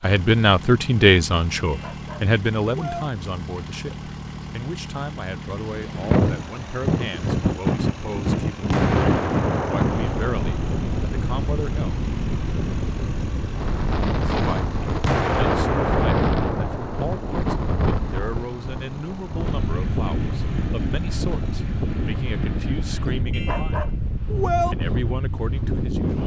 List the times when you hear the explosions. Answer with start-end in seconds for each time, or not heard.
8.7-11.0, 15.0-17.4.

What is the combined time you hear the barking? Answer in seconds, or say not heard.
3 s.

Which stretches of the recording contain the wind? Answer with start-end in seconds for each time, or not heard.
5.7-26.2.